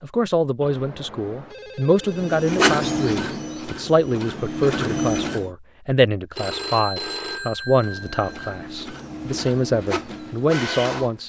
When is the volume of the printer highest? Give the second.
3 s.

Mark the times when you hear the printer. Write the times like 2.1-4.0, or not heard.
2.1-5.5, 7.7-11.2.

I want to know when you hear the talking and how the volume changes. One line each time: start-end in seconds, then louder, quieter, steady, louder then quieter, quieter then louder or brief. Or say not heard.
0.0-11.2 steady.